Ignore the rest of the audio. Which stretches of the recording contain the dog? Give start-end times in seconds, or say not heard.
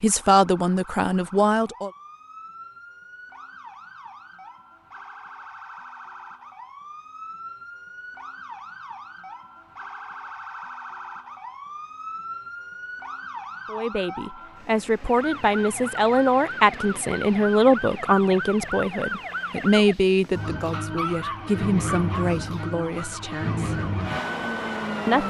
20.7-22.3.